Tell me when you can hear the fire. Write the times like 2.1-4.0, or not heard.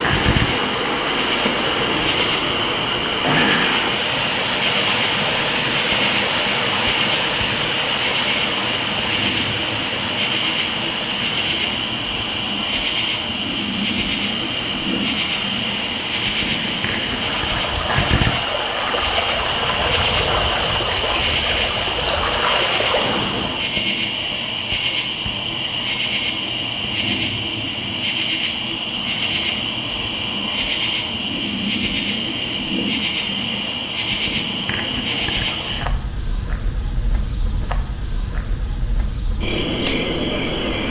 not heard.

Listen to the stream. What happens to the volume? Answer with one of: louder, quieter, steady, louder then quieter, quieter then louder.
quieter then louder.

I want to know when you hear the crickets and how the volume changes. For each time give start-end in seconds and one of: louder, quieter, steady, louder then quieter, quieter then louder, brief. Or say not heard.
0.0-40.8 steady.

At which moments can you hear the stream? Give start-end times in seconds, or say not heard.
0.0-23.8.